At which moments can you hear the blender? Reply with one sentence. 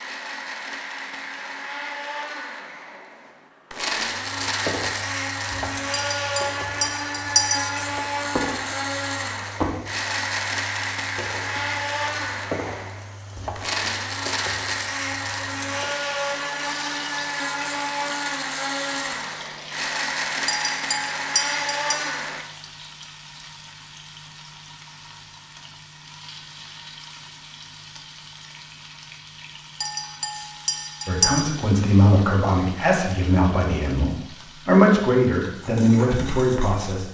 The blender can be heard from 0.0 to 22.4 s.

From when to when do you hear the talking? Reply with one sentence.
The talking can be heard from 31.1 to 37.0 s.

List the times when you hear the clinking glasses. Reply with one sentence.
You can hear the clinking glasses from 5.9 to 7.8 s, from 20.4 to 21.9 s and from 29.8 to 31.4 s.